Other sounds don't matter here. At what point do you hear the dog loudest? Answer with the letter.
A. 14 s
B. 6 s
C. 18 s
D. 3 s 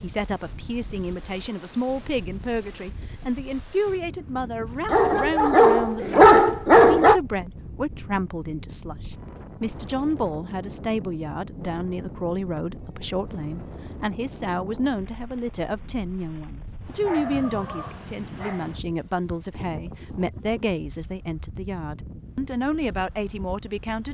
B.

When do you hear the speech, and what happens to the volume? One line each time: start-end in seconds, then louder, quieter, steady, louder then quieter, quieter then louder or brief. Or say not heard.
0.0-24.1 steady.